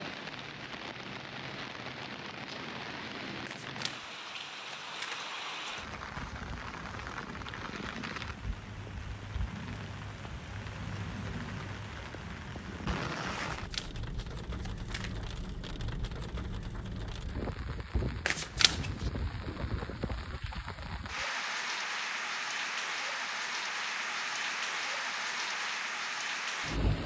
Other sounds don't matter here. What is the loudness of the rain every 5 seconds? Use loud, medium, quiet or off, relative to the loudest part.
medium, medium, medium, medium, loud, loud.